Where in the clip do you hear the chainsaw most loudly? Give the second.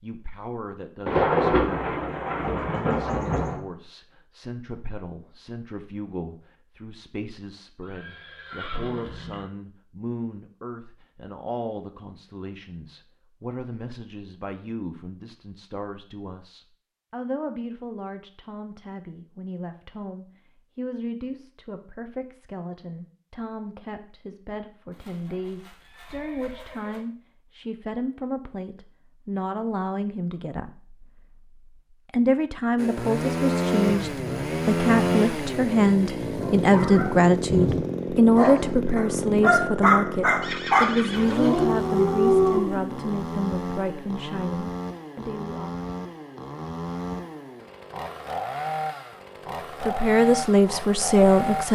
35 s.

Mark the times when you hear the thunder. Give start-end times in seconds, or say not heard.
1.1-3.6, 33.9-37.9.